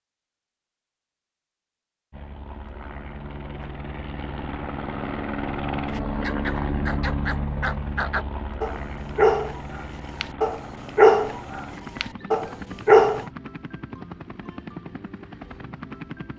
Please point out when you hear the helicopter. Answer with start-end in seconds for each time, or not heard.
2.1-16.3.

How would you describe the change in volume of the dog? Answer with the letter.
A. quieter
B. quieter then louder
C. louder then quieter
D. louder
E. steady
C.